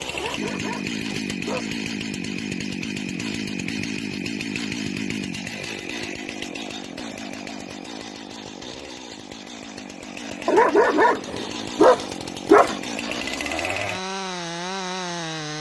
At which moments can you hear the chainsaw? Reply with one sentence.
You can hear the chainsaw from 0.0 to 15.5 s.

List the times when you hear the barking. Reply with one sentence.
The barking can be heard from 0.1 to 1.8 s and from 10.4 to 13.2 s.